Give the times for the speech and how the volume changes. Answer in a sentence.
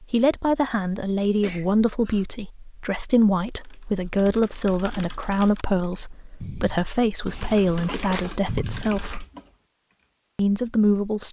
The speech can be heard from 0.0 to 9.2 s, at a steady volume; and briefly from 10.3 to 11.2 s.